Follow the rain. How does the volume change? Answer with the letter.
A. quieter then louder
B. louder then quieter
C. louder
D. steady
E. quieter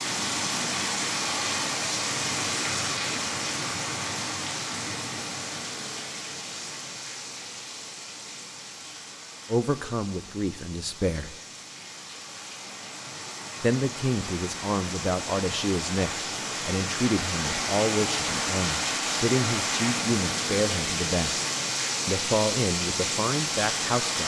A.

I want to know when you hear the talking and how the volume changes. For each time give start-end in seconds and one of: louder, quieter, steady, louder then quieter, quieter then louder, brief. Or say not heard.
9.4-11.3 brief
13.6-21.4 steady
22.1-24.2 brief.